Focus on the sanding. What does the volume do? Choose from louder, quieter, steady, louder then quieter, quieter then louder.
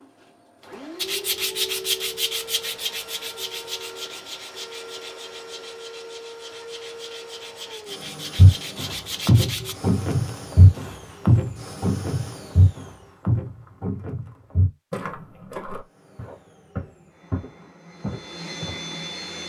quieter then louder.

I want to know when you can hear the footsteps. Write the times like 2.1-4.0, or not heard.
8.3-18.9.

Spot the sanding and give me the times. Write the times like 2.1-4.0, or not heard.
0.9-9.8.